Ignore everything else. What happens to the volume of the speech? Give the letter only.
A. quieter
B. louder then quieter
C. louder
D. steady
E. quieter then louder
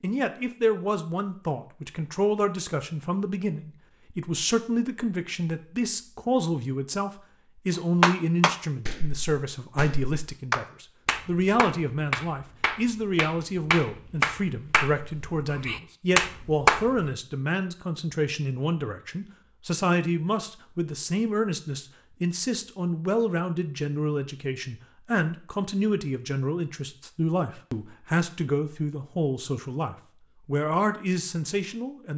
D.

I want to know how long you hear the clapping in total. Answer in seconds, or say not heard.
9 s.